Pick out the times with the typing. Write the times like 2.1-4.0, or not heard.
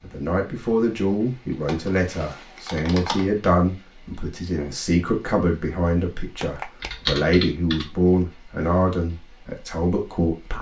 1.6-3.2, 6.8-8.0.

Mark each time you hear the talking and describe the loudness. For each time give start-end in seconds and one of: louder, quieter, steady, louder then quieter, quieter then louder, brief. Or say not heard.
0.0-10.5 steady.